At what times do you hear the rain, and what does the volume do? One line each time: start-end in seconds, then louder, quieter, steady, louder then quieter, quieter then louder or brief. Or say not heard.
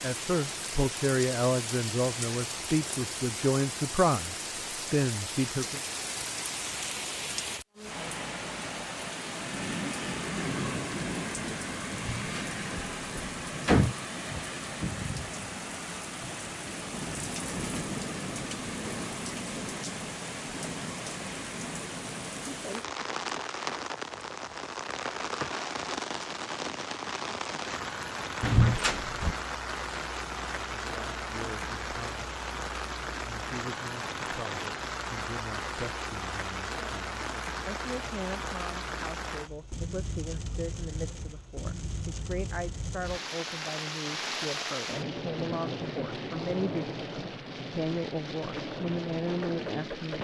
0.0-50.2 steady.